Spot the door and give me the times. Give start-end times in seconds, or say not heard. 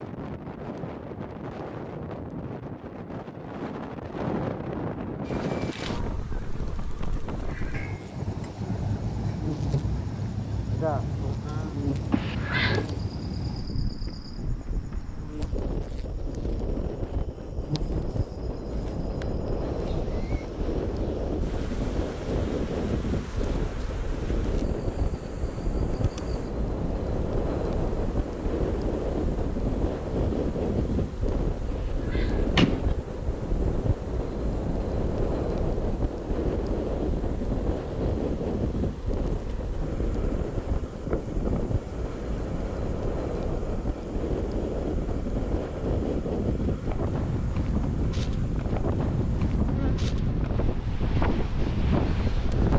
12.1-12.8, 31.7-32.9.